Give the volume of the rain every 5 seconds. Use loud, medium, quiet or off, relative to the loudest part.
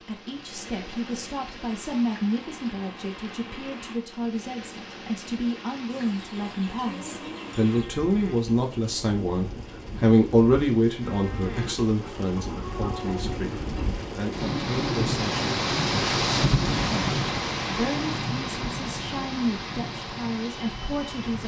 quiet, quiet, medium, loud, medium.